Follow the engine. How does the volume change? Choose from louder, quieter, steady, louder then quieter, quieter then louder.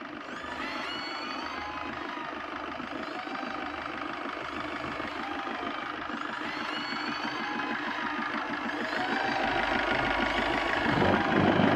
louder.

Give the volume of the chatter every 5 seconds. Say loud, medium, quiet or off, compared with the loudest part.
medium, loud, loud.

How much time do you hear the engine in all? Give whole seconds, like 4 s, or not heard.
12 s.